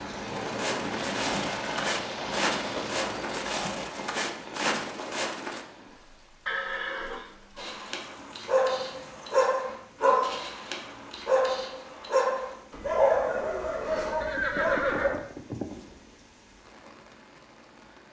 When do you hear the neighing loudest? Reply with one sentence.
The volume of the neighing peaks at 15 seconds.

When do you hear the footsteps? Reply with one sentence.
You can hear the footsteps from 0.3 to 5.7 s.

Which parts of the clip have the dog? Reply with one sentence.
The dog can be heard from 7.5 to 15.1 s.